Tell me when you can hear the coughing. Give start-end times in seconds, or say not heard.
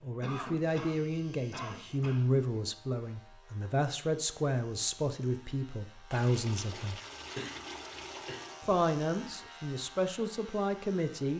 0.2-2.2, 7.2-8.3.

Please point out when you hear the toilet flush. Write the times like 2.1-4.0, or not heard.
6.1-8.7.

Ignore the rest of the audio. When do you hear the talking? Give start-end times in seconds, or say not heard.
0.0-7.0, 8.7-11.3.